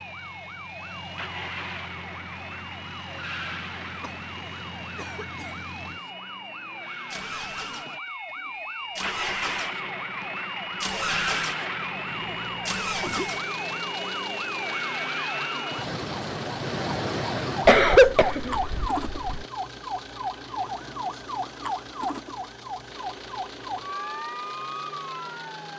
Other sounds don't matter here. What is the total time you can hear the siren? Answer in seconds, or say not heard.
26 s.